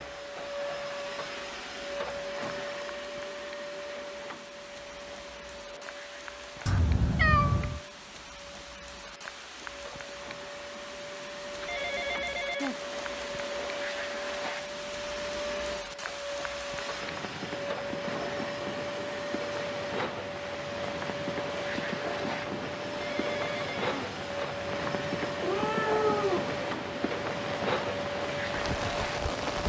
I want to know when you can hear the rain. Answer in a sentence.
The rain can be heard from 0.0 to 29.6 s.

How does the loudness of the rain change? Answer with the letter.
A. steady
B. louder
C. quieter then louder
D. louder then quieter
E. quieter
B.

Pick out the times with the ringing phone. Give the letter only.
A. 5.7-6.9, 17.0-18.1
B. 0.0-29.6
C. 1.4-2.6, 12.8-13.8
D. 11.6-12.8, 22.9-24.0
D.